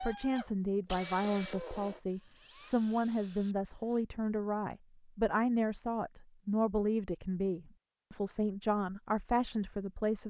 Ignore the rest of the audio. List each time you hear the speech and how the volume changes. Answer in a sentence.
You can hear the speech from 0.0 to 10.2 s, at a steady volume.